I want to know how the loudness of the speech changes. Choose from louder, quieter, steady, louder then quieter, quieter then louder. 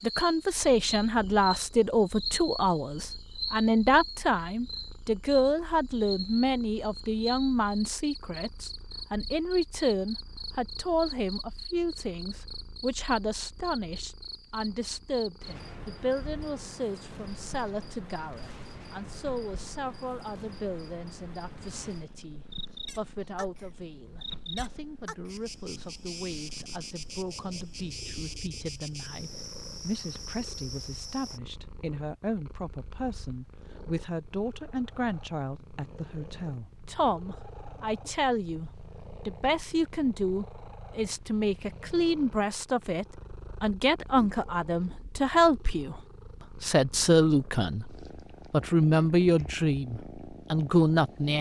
quieter then louder.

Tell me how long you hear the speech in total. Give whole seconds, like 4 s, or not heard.
51 s.